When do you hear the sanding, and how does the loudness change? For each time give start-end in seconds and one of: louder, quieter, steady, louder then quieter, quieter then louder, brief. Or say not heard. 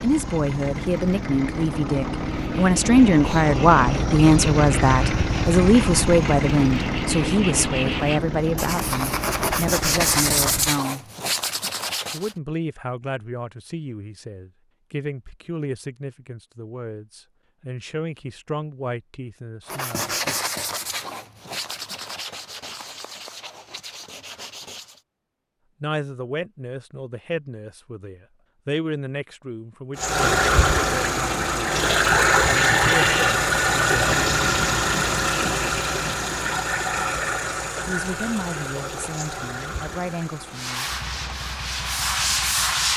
2.2-12.3 louder
19.6-25.1 quieter
40.5-42.9 brief.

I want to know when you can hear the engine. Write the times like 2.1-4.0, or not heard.
0.0-10.8, 29.9-42.9.